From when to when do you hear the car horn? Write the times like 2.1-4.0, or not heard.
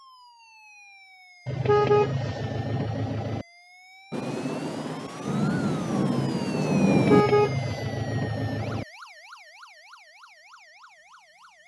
1.4-3.5, 6.8-8.8.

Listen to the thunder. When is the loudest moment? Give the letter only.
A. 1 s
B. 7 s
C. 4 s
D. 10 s
B.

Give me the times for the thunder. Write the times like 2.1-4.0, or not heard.
4.1-7.2.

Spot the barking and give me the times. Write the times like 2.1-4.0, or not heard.
not heard.